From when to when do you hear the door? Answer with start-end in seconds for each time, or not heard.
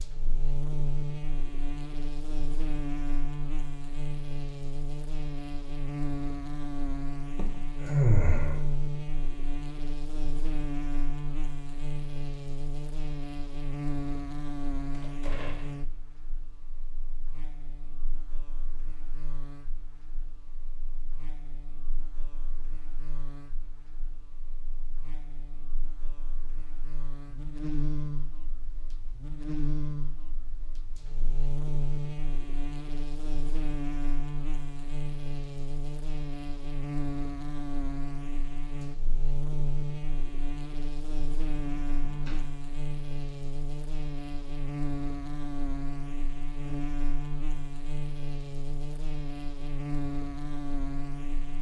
14.9-15.8, 41.6-42.4.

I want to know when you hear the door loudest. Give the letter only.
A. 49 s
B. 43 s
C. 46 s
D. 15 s
D.